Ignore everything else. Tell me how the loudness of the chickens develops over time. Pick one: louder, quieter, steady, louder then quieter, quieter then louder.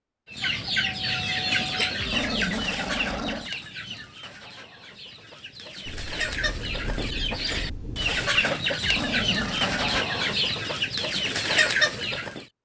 quieter then louder.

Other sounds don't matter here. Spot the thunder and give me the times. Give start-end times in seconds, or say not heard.
5.8-8.3.